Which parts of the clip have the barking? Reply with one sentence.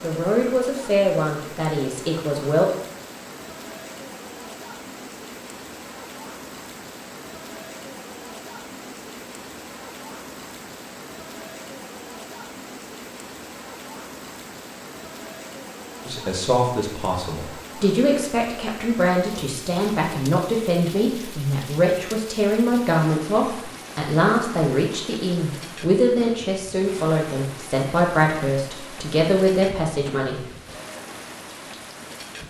You can't hear the barking here.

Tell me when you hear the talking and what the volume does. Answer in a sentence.
The talking can be heard briefly from 0.0 to 2.6 s; and from 16.1 to 30.4 s, at a steady volume.